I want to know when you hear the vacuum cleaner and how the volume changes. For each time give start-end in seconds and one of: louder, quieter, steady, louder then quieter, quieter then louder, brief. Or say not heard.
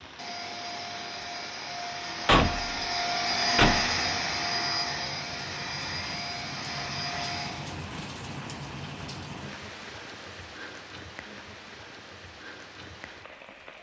0.0-7.7 louder then quieter.